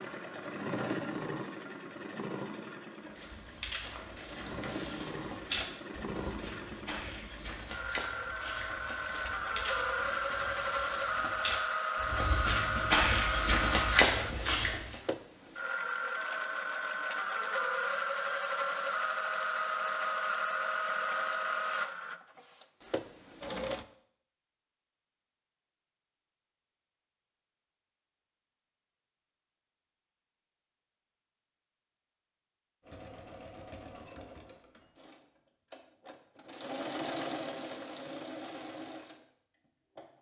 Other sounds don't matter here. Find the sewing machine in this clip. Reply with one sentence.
The sewing machine can be heard from 0.0 to 23.9 s and from 32.8 to 40.1 s.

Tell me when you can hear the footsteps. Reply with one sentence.
The footsteps can be heard from 3.1 to 14.9 s.